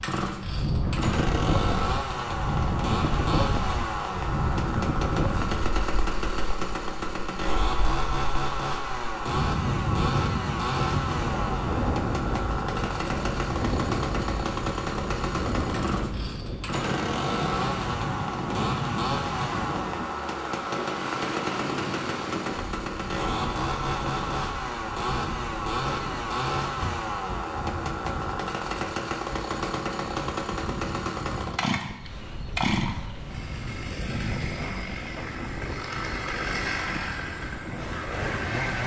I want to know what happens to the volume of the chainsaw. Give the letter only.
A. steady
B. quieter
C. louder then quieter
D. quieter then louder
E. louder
A.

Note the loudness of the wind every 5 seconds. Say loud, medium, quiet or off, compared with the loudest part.
loud, loud, loud, loud, medium, medium, medium, medium.